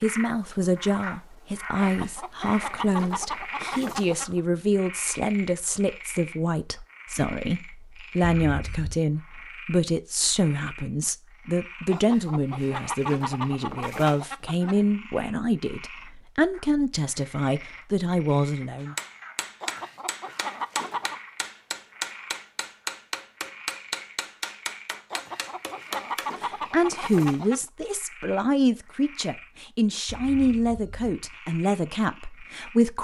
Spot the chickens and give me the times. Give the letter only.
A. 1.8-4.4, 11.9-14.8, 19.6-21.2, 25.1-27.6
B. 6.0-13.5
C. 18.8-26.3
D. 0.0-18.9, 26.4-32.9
A.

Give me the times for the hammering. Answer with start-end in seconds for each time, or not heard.
18.8-26.3.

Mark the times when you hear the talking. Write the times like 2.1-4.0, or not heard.
0.0-18.9, 26.4-32.9.